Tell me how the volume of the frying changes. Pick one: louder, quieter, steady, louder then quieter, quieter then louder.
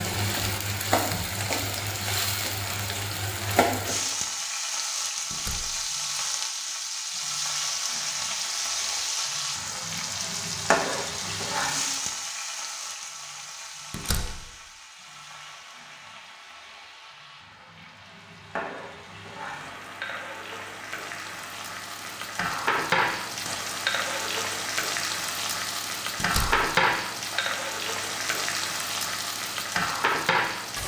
quieter then louder.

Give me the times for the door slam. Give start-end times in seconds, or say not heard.
5.3-5.8, 13.9-14.4, 26.1-26.7.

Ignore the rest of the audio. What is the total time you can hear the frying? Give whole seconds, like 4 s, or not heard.
31 s.